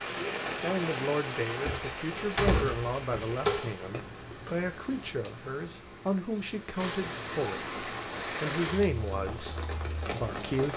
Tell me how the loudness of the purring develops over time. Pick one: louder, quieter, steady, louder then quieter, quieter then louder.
louder then quieter.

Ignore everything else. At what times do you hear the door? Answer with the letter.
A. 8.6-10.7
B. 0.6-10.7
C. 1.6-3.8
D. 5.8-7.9
C.